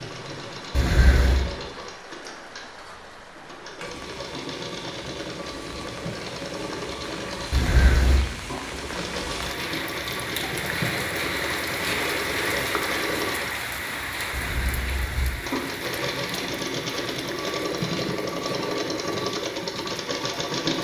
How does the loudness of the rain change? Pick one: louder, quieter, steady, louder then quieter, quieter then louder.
louder then quieter.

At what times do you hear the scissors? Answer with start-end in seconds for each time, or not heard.
0.7-1.4, 7.5-8.2, 14.3-15.3.